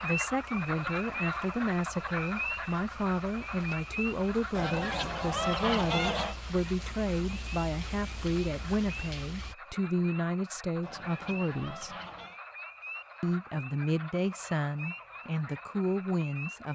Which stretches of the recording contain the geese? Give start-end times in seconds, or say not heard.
4.5-6.3, 10.8-12.4.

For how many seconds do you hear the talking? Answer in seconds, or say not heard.
15 s.